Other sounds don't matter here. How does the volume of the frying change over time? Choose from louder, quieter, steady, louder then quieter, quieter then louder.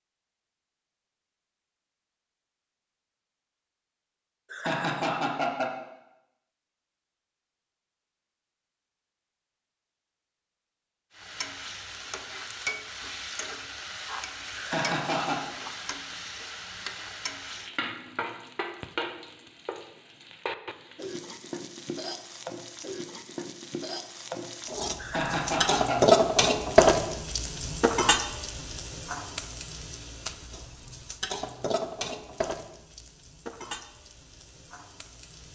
louder then quieter.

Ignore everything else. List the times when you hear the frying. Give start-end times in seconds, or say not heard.
11.2-35.5.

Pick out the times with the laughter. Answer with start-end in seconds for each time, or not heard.
4.5-5.8, 14.6-15.5, 24.9-26.1.